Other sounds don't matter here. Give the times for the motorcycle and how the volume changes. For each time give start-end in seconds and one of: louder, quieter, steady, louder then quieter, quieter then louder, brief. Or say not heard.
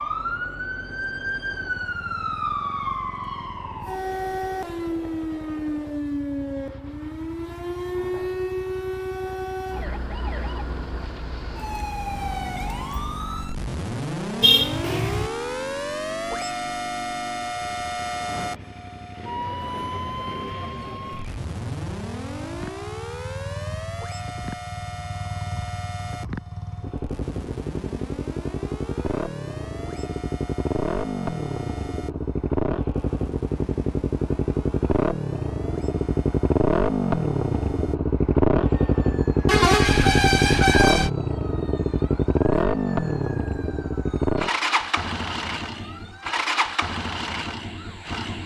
0.0-48.4 louder.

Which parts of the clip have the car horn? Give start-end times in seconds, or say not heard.
14.4-15.3, 39.5-41.1.